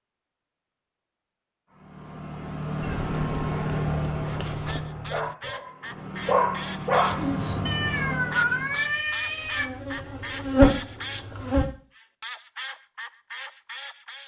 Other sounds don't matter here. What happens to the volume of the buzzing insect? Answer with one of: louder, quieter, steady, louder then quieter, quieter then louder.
quieter then louder.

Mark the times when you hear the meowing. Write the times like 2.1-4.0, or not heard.
2.8-4.8, 7.7-9.7.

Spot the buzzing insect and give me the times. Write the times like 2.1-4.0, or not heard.
7.0-11.7.